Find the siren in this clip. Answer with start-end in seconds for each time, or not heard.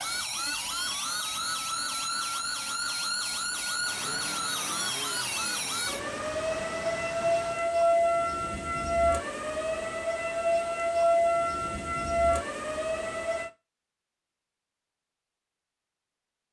0.0-13.5.